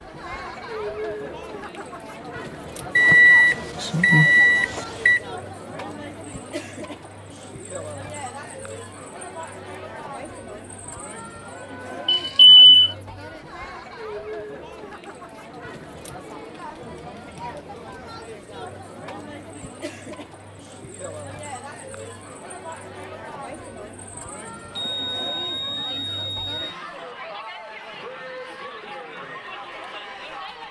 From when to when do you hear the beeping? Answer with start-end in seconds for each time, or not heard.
3.0-5.2, 12.1-12.9, 24.8-26.8.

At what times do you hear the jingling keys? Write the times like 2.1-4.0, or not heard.
not heard.